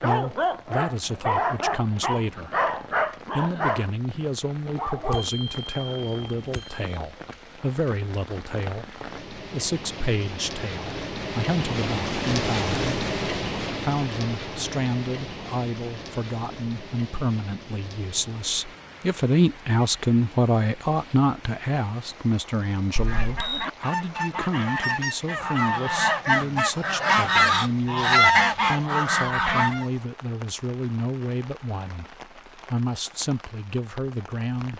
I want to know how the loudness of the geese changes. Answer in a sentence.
The volume of the geese goes up.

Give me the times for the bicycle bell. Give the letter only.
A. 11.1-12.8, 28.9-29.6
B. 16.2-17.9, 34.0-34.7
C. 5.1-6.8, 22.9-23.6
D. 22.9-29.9
C.